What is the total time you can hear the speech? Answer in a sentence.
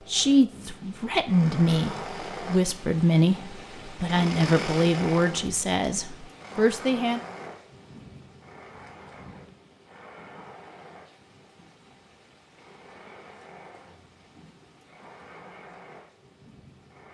You can hear the speech for 7 seconds altogether.